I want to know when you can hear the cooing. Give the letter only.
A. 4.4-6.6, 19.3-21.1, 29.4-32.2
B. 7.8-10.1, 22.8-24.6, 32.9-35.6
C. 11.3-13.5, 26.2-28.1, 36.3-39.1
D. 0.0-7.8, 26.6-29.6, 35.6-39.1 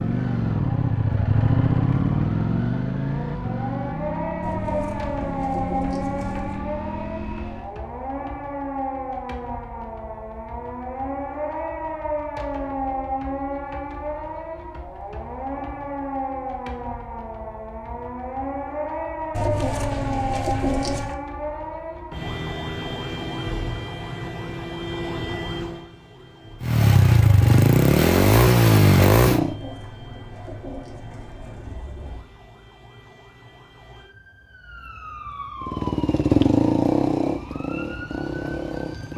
A.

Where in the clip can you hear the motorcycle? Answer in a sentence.
You can hear the motorcycle from 0.0 to 7.8 s, from 26.6 to 29.6 s and from 35.6 to 39.1 s.